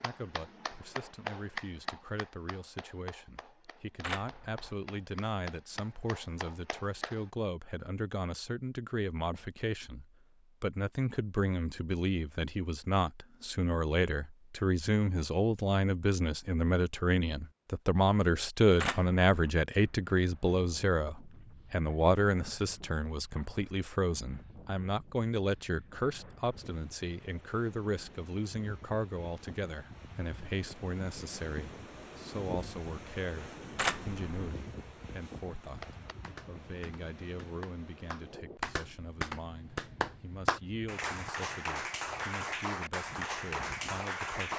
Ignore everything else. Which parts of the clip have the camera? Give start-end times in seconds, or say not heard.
4.0-4.8, 18.8-19.5, 33.8-34.5.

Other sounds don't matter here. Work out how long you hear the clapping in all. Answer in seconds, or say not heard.
16 s.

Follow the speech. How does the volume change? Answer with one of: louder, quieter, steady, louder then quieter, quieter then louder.
louder then quieter.